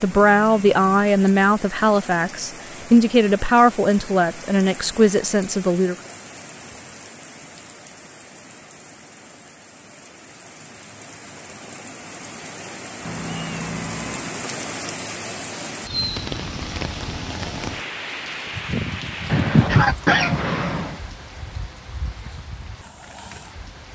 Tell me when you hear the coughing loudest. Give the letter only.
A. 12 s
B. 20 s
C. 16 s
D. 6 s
B.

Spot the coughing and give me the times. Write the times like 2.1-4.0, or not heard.
19.3-20.9.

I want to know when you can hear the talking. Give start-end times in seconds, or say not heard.
0.0-6.0.